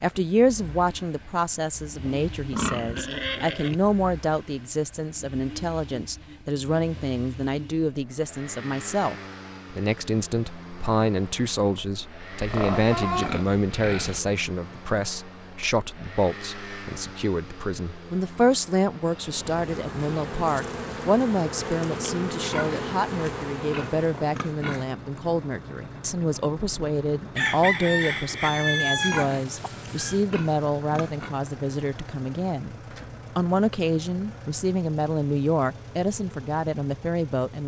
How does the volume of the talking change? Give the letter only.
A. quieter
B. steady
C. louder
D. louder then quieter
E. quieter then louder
B.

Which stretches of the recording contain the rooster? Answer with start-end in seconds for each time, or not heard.
27.4-30.2.